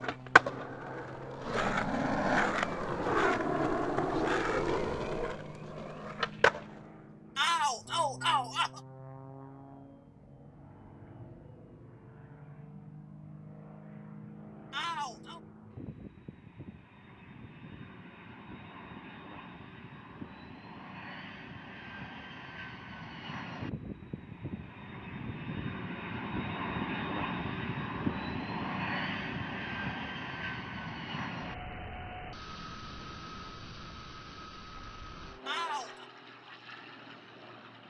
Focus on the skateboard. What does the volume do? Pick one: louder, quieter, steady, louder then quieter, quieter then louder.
louder then quieter.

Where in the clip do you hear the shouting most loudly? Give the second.
8 s.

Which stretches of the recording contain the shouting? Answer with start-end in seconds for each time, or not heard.
7.3-8.8, 14.7-15.4, 35.5-36.0.